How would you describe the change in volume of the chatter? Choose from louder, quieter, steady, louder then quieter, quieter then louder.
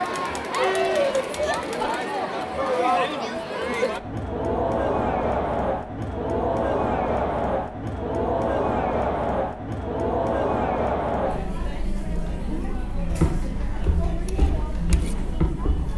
quieter.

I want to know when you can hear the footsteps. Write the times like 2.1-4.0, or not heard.
13.0-15.9.